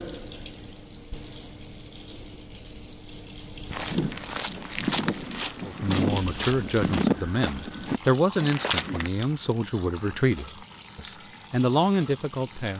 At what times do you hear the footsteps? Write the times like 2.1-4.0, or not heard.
3.7-9.1.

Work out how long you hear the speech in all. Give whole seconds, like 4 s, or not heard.
7 s.